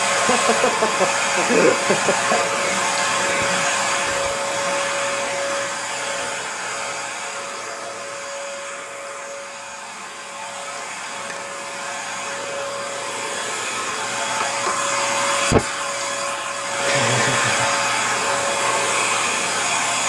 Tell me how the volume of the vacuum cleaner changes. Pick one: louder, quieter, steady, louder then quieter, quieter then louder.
quieter then louder.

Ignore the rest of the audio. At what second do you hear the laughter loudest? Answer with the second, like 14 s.
2 s.